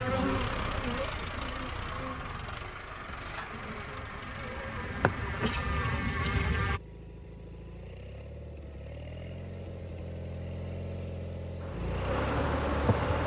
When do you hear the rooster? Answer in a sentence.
You can't hear the rooster here.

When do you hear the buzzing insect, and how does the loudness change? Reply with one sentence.
The buzzing insect can be heard from 0.0 to 6.8 s, getting quieter then louder; and briefly from 11.6 to 13.2 s.